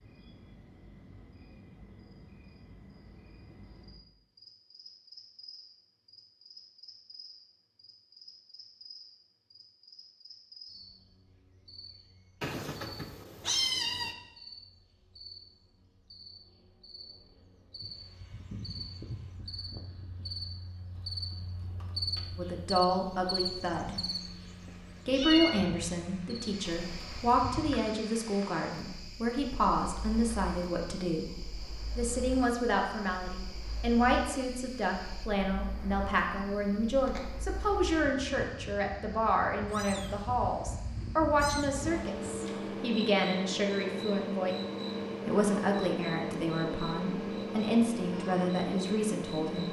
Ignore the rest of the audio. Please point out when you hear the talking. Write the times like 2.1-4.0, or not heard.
22.4-23.9, 25.1-44.5, 45.2-49.6.